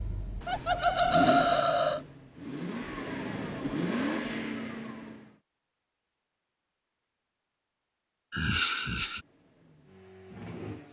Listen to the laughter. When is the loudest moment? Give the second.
1 s.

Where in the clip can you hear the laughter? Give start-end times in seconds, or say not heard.
0.5-2.0, 8.3-9.2.